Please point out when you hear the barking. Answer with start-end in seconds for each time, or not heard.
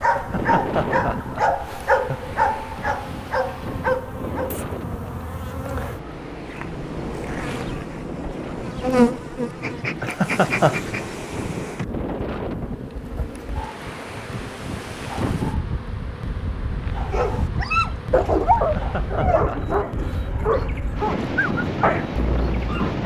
0.0-4.5, 17.1-23.0.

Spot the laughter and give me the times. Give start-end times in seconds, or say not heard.
0.1-2.2, 10.0-10.8, 18.6-20.3.